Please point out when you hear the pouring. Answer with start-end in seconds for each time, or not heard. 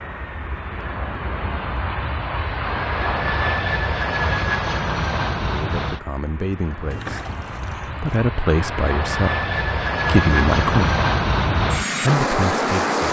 6.9-8.2.